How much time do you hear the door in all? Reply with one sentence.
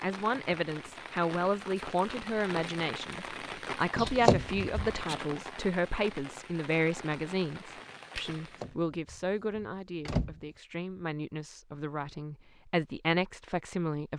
You can hear the door for 3 seconds altogether.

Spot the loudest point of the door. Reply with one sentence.
The loudest moment of the door is at 4 seconds.